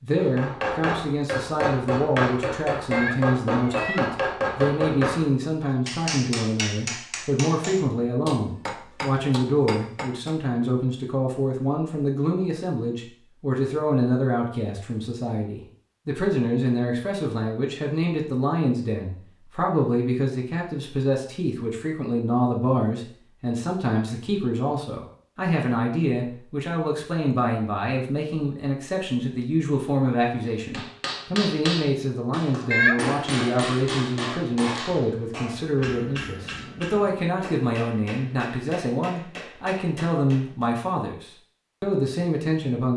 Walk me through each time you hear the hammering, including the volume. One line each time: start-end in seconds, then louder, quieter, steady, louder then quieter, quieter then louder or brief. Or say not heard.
0.1-10.3 quieter
30.7-40.7 quieter.